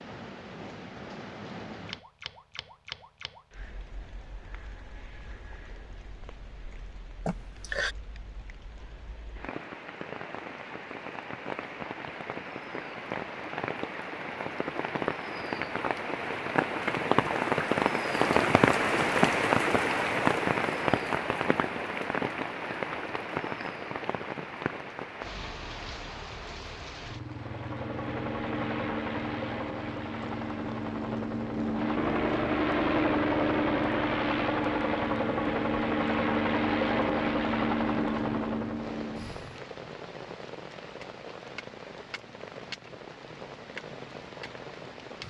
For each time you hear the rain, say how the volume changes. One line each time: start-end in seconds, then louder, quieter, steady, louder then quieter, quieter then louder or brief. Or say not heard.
0.0-45.2 louder then quieter.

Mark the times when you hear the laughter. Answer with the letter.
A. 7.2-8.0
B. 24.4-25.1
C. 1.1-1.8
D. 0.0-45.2
A.